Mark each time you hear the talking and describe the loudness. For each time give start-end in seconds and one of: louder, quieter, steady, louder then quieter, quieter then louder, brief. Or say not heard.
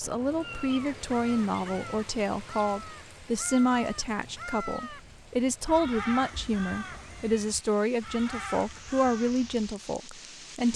0.0-10.7 steady.